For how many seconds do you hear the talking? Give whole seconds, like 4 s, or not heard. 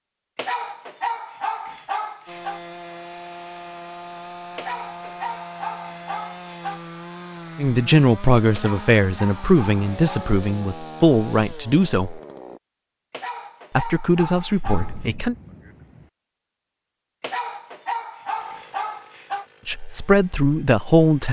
8 s.